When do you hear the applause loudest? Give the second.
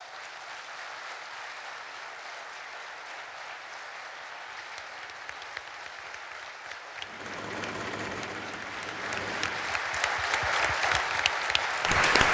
12 s.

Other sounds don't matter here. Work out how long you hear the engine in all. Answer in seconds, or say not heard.
3 s.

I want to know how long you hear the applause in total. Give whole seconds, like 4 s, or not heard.
12 s.